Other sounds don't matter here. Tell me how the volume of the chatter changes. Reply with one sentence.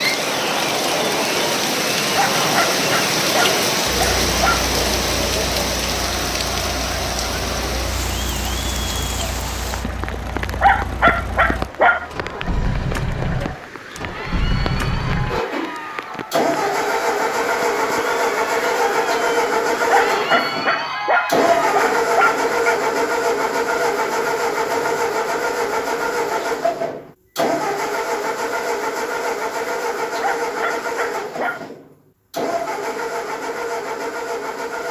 The loudness of the chatter goes down, then up.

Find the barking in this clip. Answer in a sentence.
You can hear the barking from 2.1 to 4.7 s, from 10.6 to 12.5 s, from 19.9 to 22.8 s and from 30.2 to 31.6 s.